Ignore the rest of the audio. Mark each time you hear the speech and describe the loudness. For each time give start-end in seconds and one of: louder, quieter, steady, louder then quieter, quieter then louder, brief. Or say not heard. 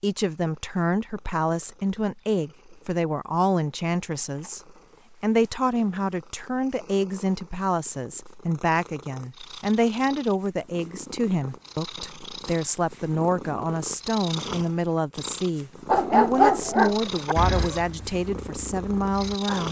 0.0-19.6 steady.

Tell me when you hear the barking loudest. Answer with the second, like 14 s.
16 s.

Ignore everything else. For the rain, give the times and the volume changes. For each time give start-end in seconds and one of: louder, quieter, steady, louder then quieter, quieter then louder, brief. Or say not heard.
not heard.